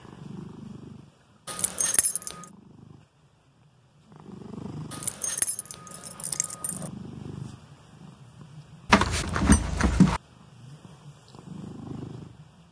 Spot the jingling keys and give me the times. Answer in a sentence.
The jingling keys can be heard from 1.4 to 2.5 s, from 4.9 to 6.9 s and from 8.8 to 10.2 s.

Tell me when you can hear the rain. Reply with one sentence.
You can't hear the rain here.